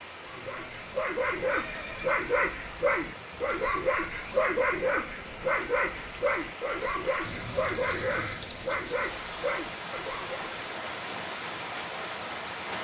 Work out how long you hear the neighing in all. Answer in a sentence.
You can hear the neighing for 2 seconds altogether.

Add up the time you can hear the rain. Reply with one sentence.
You can hear the rain for 13 seconds altogether.